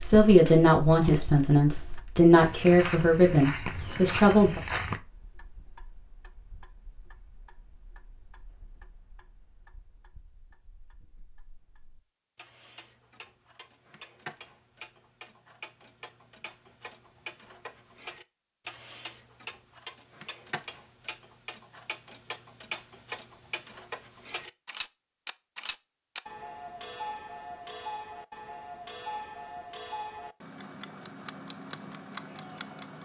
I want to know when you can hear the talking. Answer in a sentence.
The talking can be heard from 0.0 to 4.6 s.